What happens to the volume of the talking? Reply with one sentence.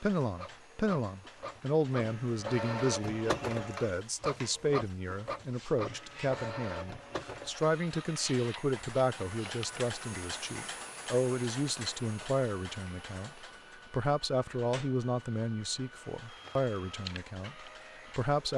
The loudness of the talking stays about the same.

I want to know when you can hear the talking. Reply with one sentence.
You can hear the talking from 0.0 to 18.5 s.